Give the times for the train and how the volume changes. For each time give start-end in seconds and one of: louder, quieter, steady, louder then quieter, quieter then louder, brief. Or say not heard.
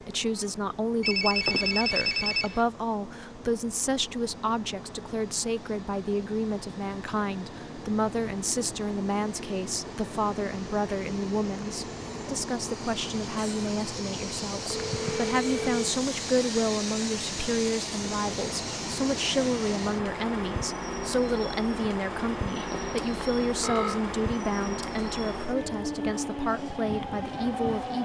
0.0-28.0 louder.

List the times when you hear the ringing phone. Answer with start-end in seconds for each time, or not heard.
1.0-2.6, 14.7-15.9, 22.6-24.0.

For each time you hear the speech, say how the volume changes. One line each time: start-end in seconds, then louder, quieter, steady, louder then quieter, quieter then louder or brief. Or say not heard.
0.0-28.0 steady.